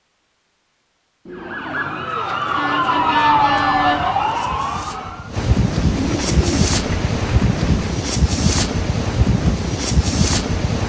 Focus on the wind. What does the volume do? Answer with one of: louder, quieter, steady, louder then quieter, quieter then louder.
louder.